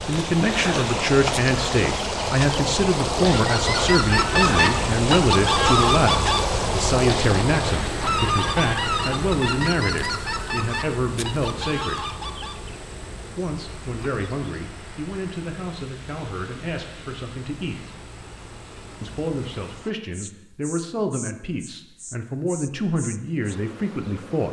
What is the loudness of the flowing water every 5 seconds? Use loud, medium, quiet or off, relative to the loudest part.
loud, loud, quiet, quiet, off.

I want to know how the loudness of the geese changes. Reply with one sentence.
The volume of the geese goes down.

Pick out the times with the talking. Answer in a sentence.
The talking can be heard from 0.1 to 12.1 s, from 13.3 to 17.8 s and from 19.0 to 24.4 s.